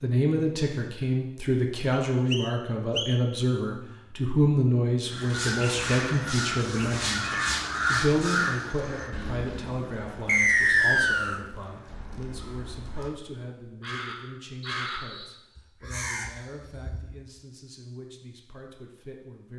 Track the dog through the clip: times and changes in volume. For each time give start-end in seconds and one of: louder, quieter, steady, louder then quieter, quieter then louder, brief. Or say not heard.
not heard.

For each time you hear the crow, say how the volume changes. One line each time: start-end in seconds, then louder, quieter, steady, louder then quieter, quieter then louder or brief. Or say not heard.
5.0-17.1 quieter then louder.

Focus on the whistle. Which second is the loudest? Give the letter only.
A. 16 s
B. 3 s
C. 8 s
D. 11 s
D.